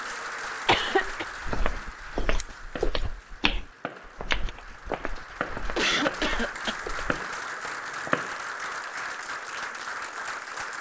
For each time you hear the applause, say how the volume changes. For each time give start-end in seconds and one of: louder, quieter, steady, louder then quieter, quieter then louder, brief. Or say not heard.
0.0-10.7 quieter then louder.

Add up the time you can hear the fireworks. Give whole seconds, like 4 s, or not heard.
6 s.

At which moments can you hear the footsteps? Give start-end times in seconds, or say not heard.
0.8-7.2.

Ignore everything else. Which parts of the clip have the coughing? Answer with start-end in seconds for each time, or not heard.
0.7-1.2, 5.8-6.8.